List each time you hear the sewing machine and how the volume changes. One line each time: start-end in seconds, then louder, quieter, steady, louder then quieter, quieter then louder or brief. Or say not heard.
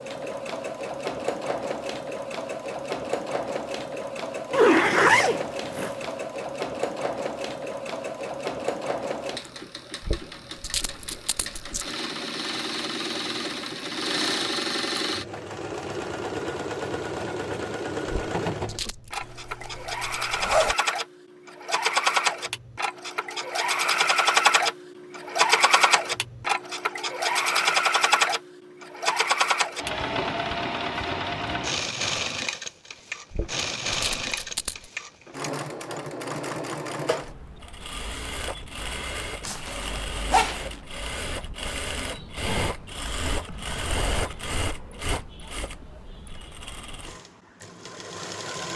0.0-48.7 louder then quieter.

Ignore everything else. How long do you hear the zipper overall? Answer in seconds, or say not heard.
4 s.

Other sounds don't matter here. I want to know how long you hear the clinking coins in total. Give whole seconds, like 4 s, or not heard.
5 s.